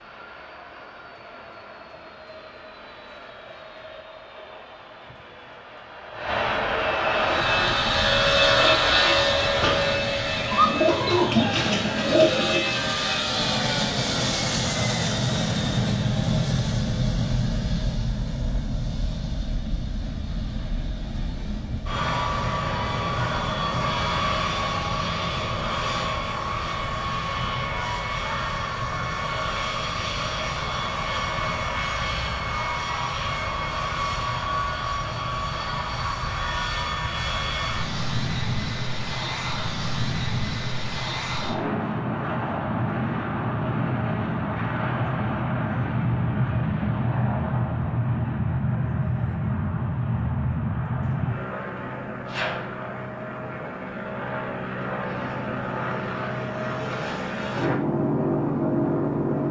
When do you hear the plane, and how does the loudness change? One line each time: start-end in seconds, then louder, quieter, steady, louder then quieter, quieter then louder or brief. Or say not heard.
0.0-59.4 steady.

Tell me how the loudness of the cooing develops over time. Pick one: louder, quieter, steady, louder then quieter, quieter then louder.
louder.